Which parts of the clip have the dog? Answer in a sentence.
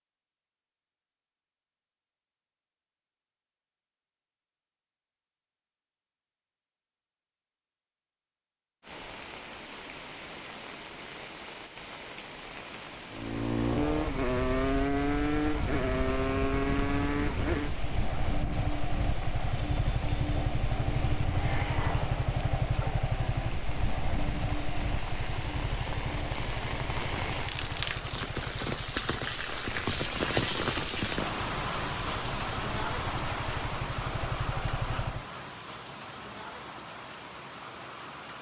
You can't hear the dog here.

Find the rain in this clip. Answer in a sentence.
The rain can be heard from 8.8 to 38.3 s.